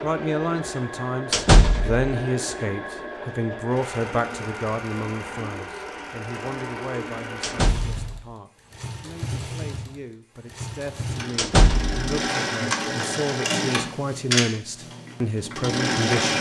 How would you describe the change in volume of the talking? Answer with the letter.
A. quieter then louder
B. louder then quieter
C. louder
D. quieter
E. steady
A.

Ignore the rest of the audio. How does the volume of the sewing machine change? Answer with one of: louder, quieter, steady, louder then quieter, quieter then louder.
louder.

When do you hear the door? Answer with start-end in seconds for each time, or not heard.
1.3-2.1, 7.4-8.2, 11.3-12.1.